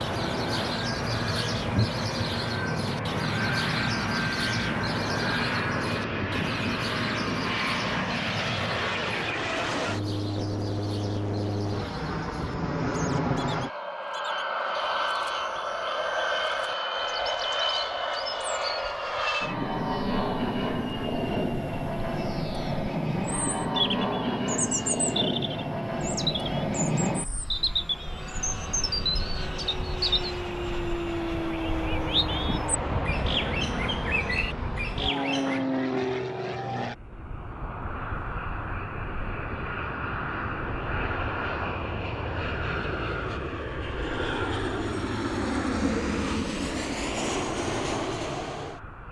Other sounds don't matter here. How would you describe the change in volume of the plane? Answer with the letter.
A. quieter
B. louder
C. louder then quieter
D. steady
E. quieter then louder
D.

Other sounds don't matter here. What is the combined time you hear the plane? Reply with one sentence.
You can hear the plane for 49 seconds altogether.